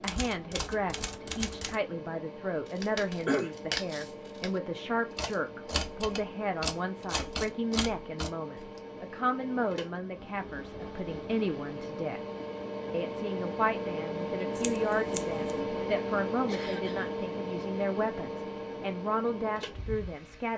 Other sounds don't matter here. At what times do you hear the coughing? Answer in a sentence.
The coughing can be heard from 2.9 to 3.5 s and from 16.4 to 17.1 s.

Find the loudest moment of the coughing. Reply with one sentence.
The loudest moment of the coughing is at 3 seconds.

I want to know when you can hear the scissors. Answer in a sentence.
You can hear the scissors from 2.6 to 4.6 s and from 14.6 to 15.6 s.